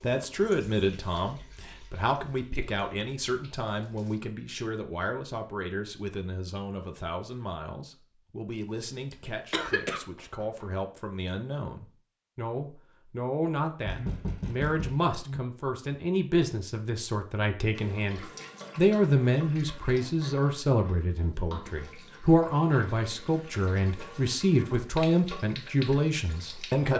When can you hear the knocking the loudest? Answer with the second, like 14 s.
14 s.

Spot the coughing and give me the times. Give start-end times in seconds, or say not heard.
8.7-10.0.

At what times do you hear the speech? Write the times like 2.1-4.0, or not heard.
0.0-26.9.